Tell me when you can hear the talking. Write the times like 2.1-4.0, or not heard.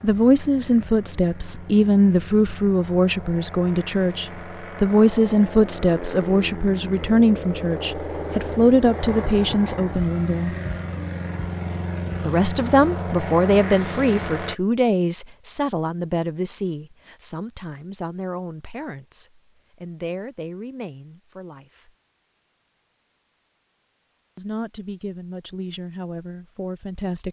0.0-10.6, 12.2-21.9, 24.4-27.2.